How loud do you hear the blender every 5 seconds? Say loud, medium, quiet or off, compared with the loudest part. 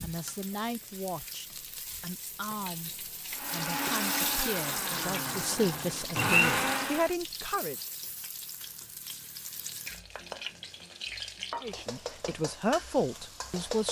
medium, loud, off.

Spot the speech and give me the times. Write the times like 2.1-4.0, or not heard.
0.0-7.8, 11.6-13.8.